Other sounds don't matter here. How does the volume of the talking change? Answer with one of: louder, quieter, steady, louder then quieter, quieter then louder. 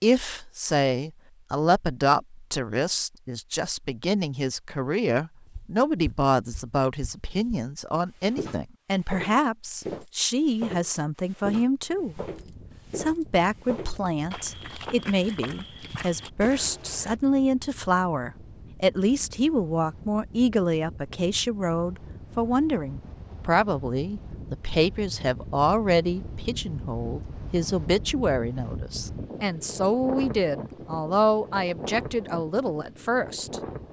steady.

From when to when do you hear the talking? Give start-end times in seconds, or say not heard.
0.0-12.2, 12.9-33.6.